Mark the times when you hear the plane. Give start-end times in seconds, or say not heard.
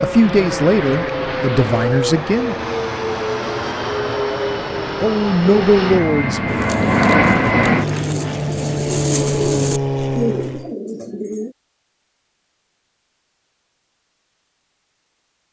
0.0-10.8.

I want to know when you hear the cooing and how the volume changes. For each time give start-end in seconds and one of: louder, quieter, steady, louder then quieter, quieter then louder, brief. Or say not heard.
6.5-11.6 louder then quieter.